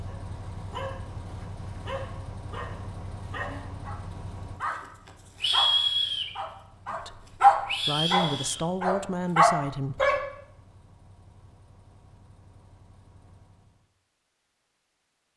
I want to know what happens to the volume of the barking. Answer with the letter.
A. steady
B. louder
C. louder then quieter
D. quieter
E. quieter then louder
B.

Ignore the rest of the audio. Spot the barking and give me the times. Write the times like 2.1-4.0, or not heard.
0.1-4.8, 5.4-10.2.